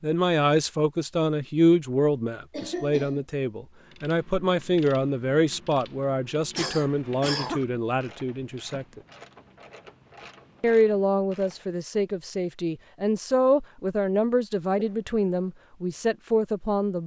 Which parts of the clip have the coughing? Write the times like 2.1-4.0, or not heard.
2.5-3.2, 6.5-7.7, 14.8-15.5.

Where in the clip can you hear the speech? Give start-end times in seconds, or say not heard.
0.0-9.0, 10.6-17.0.